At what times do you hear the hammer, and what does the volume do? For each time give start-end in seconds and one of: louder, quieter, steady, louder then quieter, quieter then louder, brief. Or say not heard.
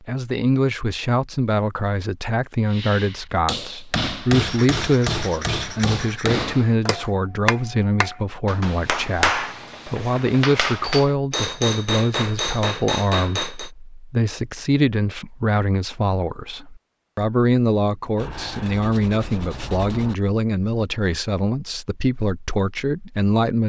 2.7-13.7 steady.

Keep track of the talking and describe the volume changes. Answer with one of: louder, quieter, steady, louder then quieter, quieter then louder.
steady.